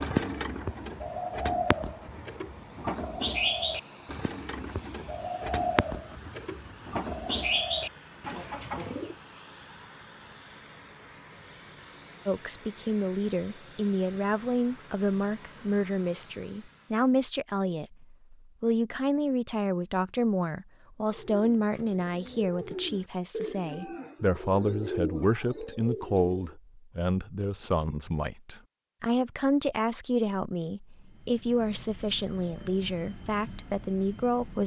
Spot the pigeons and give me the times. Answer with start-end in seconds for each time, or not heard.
0.0-9.2, 21.1-26.6.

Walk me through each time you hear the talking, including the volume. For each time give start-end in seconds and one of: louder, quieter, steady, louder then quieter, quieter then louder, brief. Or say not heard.
12.2-34.6 steady.